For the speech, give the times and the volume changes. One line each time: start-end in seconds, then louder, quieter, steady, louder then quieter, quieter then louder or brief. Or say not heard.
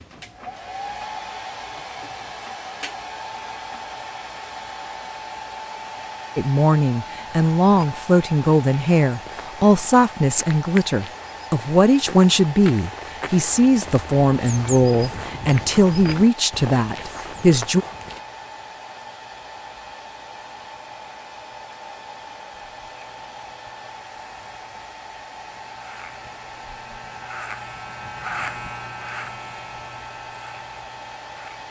6.3-17.9 steady.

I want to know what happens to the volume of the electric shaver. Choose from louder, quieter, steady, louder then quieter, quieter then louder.
louder then quieter.